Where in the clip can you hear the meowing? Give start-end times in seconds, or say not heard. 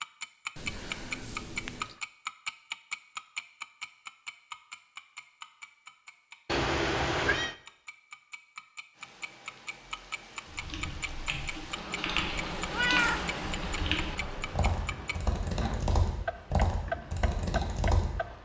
0.6-1.9, 6.5-7.5, 12.7-13.2.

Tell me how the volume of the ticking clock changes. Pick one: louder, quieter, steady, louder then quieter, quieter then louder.
quieter then louder.